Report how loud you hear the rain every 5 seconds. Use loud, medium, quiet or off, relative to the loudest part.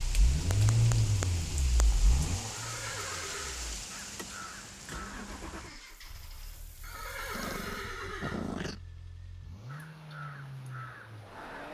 loud, quiet, off.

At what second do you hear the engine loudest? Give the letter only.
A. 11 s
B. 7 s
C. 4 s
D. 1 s
D.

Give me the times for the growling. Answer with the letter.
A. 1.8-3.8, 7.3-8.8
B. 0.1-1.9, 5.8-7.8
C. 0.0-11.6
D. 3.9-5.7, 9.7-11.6
A.